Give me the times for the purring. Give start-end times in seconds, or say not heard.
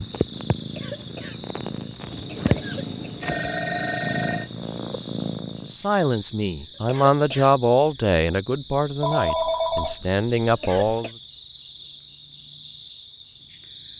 0.0-5.8.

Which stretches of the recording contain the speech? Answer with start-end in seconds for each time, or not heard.
5.7-11.1.